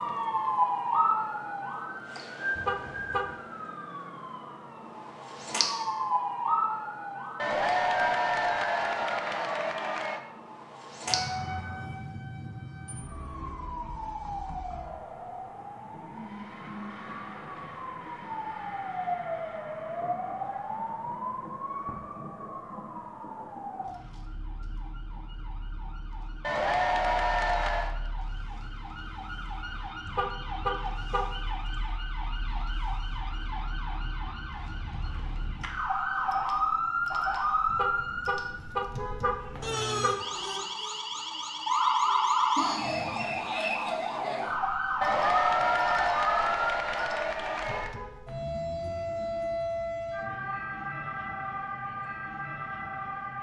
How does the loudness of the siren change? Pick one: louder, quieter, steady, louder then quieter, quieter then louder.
quieter then louder.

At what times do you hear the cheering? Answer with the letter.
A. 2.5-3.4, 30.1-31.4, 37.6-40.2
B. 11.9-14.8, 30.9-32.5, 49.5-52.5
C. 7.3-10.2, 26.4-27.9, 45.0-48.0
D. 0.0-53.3
C.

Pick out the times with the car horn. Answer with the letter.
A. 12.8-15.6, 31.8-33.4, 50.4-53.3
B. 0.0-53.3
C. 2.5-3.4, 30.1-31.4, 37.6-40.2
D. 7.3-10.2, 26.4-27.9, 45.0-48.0
C.